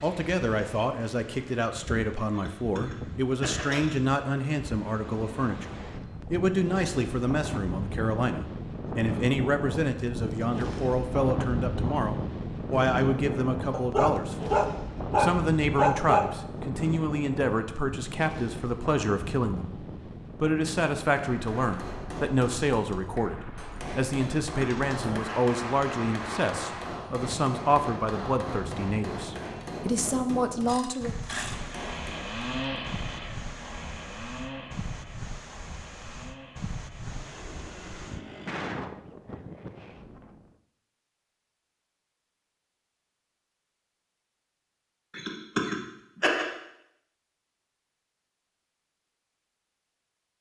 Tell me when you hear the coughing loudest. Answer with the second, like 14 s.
46 s.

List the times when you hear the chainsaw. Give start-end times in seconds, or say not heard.
30.6-38.7.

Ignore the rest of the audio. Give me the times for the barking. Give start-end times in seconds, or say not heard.
13.7-16.2.